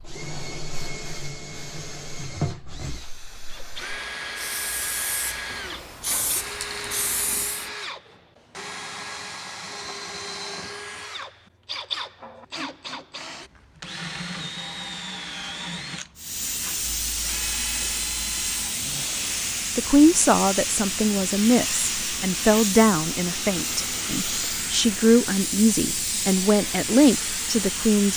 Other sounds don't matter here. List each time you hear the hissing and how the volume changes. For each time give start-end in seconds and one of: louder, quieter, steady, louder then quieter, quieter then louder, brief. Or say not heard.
0.0-7.7 louder
16.1-28.1 steady.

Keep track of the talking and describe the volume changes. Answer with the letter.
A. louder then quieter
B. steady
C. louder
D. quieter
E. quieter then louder
E.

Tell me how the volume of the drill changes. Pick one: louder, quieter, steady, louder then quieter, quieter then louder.
steady.